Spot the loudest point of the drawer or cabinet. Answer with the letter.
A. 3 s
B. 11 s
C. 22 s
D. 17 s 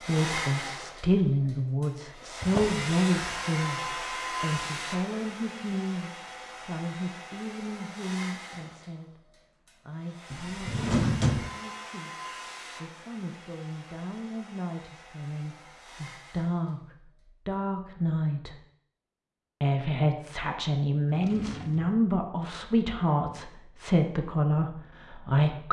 B.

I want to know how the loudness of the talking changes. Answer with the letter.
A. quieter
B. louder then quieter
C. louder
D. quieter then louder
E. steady
D.